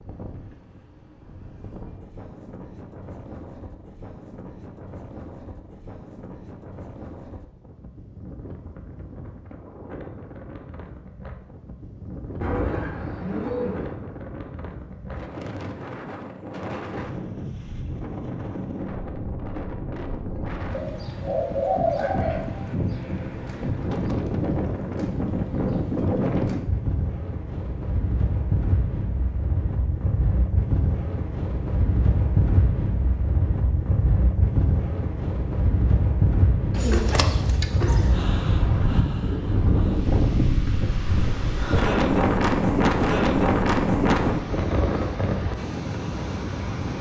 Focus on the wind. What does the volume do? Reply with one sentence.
The loudness of the wind goes up.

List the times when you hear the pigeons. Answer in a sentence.
You can hear the pigeons from 12.4 to 13.9 s, from 20.7 to 22.6 s and from 36.8 to 38.2 s.